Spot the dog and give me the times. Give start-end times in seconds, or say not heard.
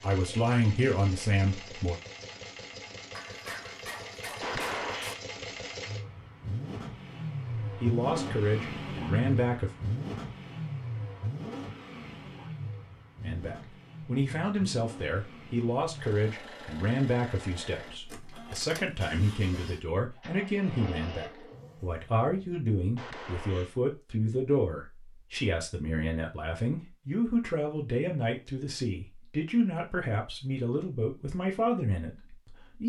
3.1-5.2.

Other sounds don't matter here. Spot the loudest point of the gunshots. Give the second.
5 s.